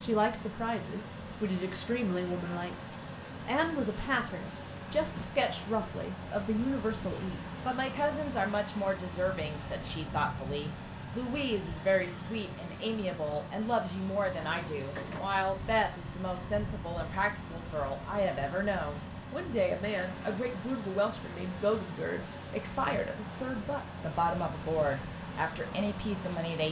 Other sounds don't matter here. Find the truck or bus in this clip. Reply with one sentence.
The truck or bus can be heard from 0.0 to 26.6 s.